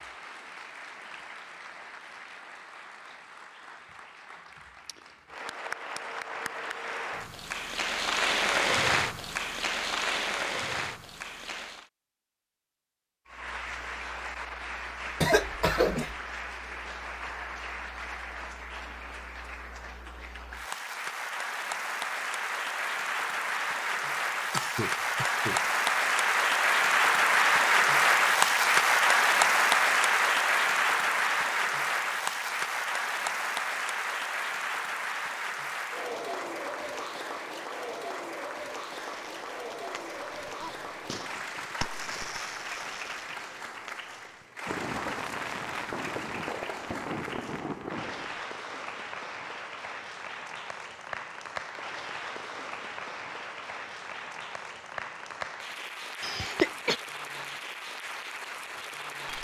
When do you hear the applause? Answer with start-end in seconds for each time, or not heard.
0.0-11.9, 13.2-59.3.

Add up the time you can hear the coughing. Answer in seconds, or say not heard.
3 s.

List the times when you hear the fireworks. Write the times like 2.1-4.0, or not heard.
39.0-48.5.